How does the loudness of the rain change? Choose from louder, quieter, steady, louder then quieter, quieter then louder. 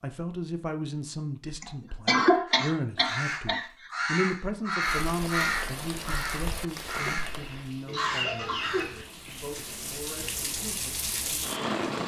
quieter then louder.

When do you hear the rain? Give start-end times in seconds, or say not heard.
4.8-12.0.